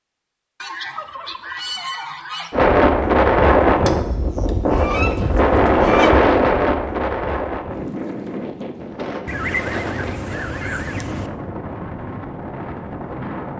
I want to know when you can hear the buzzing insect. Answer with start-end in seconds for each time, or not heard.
not heard.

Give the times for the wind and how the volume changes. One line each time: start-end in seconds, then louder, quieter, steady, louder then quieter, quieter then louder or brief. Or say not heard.
2.5-13.5 quieter.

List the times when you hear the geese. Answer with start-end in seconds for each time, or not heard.
0.6-2.5, 4.7-6.1, 9.2-11.3.